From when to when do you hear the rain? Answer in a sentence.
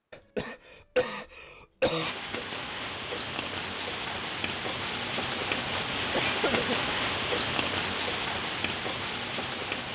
The rain can be heard from 1.9 to 9.9 s.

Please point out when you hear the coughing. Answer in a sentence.
You can hear the coughing from 0.1 to 2.1 s and from 6.1 to 7.0 s.